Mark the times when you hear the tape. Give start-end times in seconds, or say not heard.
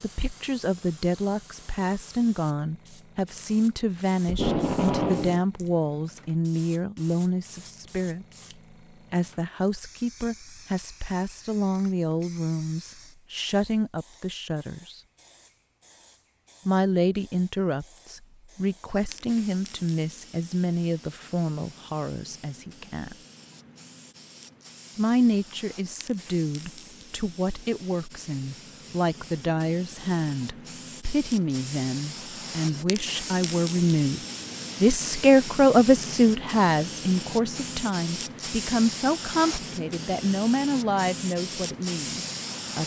4.2-5.4.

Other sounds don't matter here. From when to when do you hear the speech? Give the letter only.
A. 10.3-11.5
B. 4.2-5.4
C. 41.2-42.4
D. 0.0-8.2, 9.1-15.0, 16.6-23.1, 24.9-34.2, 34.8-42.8
D.